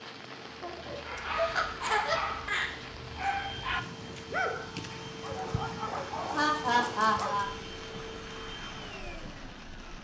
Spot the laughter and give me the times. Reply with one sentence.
You can hear the laughter from 0.6 to 2.9 s and from 6.3 to 7.5 s.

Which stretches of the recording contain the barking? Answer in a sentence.
You can hear the barking from 1.0 to 7.5 s.